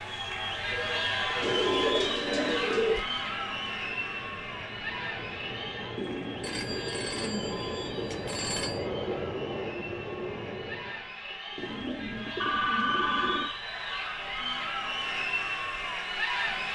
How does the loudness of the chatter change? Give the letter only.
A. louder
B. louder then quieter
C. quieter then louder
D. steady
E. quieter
C.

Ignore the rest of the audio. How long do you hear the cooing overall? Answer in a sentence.
The cooing can be heard for 6 seconds in total.